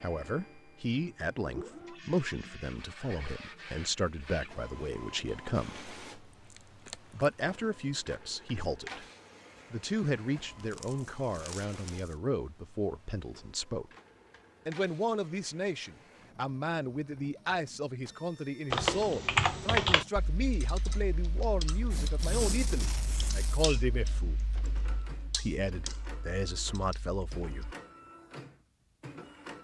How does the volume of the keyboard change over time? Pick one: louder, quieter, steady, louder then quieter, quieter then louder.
quieter.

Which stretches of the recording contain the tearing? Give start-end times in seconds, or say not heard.
6.5-7.2, 10.4-12.2, 21.9-23.6.